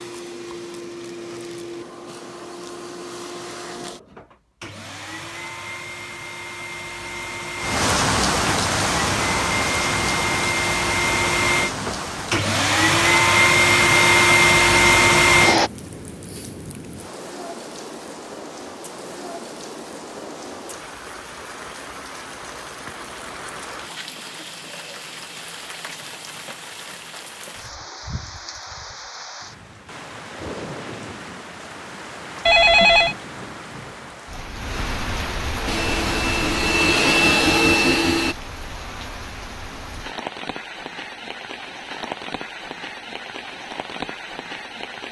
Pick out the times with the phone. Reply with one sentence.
You can hear the phone from 32.5 to 33.1 s.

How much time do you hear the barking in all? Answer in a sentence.
You can't hear the barking here.